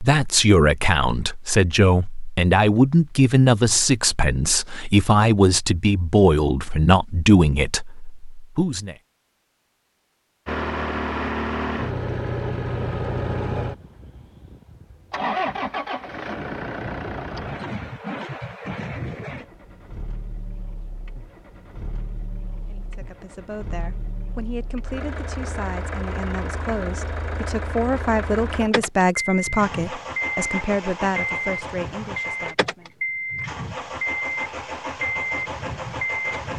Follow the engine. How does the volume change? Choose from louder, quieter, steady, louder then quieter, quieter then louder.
quieter then louder.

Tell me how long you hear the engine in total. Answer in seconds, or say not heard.
26 s.